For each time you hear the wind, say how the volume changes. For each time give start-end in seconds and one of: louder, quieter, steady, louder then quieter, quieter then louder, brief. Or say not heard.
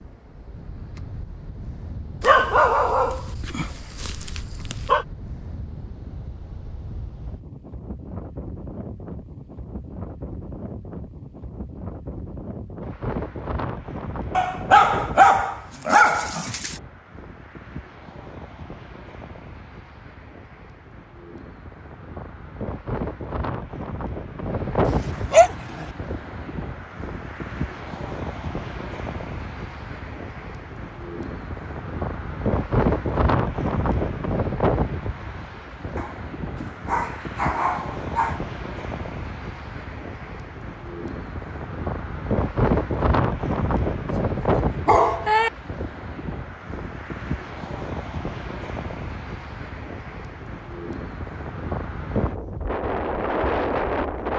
0.0-54.3 louder.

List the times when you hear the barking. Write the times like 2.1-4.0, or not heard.
2.2-5.0, 14.3-16.8, 24.9-25.9, 36.0-38.4, 44.1-45.5.